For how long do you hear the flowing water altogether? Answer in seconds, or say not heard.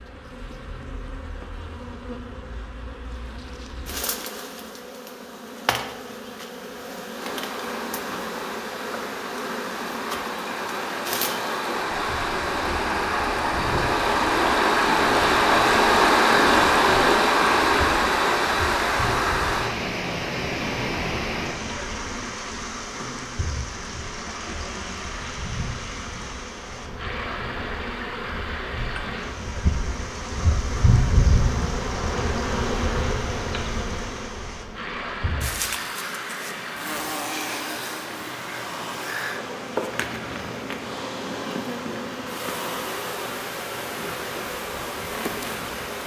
39 s.